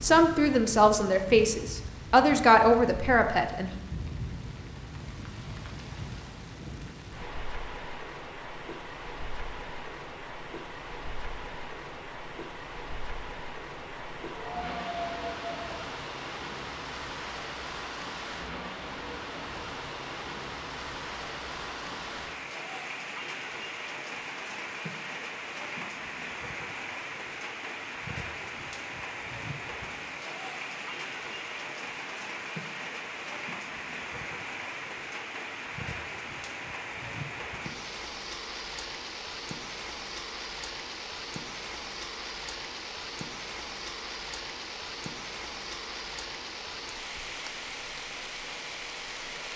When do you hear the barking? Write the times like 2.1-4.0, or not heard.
14.3-15.8.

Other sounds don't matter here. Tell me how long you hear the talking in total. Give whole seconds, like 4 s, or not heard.
4 s.